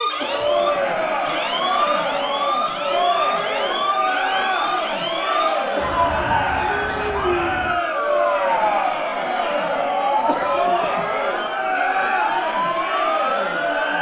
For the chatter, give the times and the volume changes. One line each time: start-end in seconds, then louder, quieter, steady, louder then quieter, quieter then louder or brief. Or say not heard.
0.1-13.9 steady.